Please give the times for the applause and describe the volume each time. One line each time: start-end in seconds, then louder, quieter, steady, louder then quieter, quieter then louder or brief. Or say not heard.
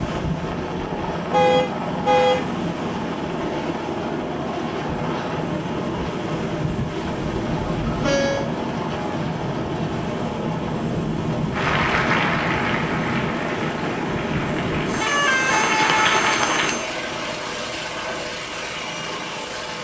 11.5-16.8 quieter then louder.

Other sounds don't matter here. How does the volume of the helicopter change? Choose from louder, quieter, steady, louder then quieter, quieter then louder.
steady.